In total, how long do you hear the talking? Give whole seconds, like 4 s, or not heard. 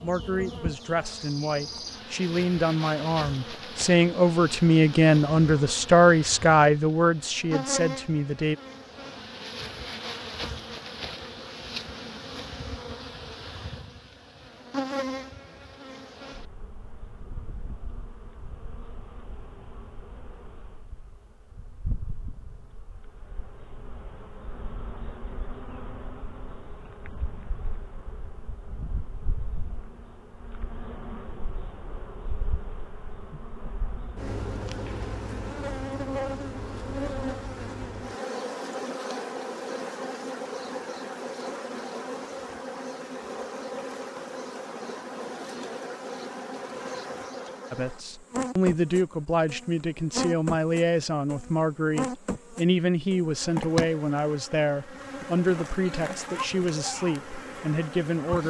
19 s.